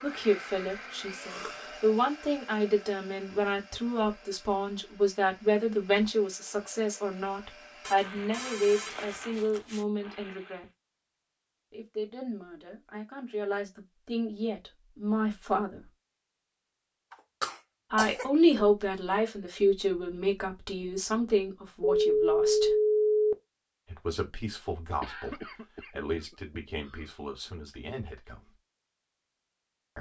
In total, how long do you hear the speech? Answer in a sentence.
You can hear the speech for 24 seconds altogether.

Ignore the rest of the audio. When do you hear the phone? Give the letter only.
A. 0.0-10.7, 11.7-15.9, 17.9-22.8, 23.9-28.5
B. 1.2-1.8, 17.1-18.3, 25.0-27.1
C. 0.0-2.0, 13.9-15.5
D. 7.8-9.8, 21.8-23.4
D.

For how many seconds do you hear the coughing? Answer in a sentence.
The coughing can be heard for 4 seconds in total.